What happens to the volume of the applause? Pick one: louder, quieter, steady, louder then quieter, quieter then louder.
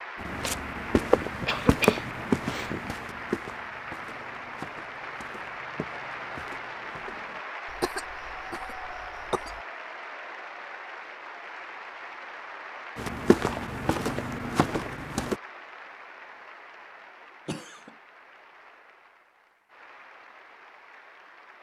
quieter.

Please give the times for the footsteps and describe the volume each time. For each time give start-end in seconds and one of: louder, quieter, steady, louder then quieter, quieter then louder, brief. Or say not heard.
0.2-7.4 quieter
12.9-15.3 brief.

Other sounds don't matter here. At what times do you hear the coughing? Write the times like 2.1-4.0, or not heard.
1.1-3.0, 7.7-9.6, 17.4-17.9.